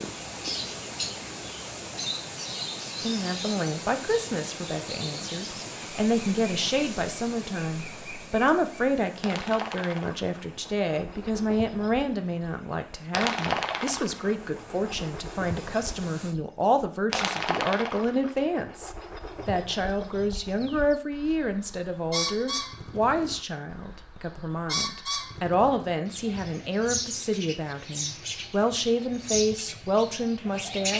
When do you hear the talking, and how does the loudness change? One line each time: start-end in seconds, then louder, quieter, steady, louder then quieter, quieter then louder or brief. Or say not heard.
3.0-30.9 steady.